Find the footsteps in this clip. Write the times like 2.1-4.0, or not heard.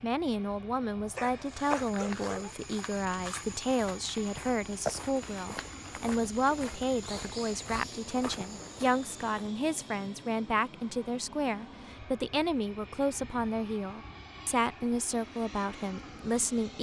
1.4-9.4.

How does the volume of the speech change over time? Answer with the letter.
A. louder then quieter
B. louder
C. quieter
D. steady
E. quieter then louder
D.